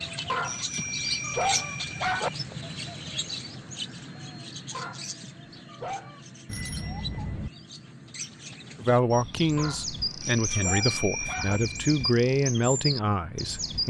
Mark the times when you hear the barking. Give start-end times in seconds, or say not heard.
0.2-2.3, 4.7-6.2, 9.6-11.6.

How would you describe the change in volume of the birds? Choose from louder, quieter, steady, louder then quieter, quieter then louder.
quieter then louder.